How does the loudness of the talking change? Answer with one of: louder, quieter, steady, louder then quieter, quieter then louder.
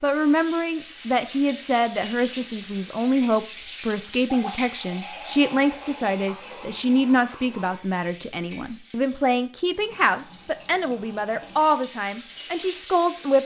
steady.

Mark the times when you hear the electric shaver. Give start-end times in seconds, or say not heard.
not heard.